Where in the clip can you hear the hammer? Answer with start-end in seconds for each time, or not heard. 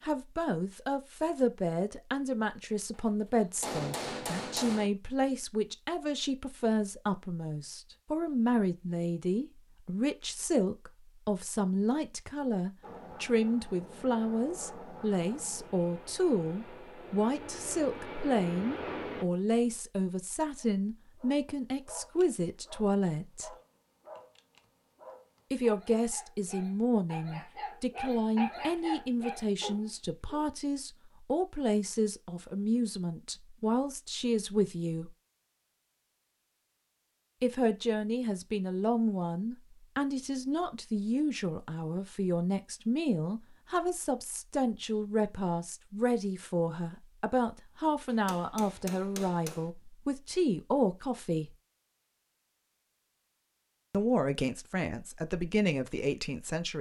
2.9-4.9, 48.1-49.7.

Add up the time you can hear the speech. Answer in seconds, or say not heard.
50 s.